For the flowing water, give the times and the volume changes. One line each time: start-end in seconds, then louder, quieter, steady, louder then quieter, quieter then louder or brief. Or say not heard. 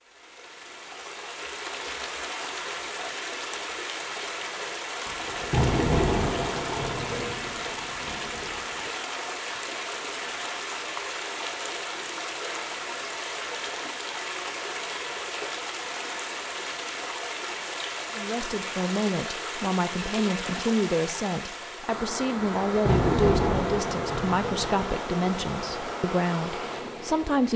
0.0-27.5 steady.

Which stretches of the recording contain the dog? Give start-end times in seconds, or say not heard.
not heard.